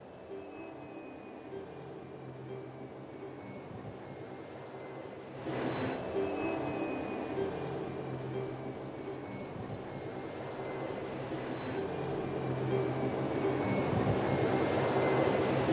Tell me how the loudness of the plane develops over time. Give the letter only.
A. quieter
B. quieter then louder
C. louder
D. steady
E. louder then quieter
C.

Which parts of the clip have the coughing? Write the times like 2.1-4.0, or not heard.
not heard.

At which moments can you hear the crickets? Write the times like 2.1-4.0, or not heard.
6.4-15.6.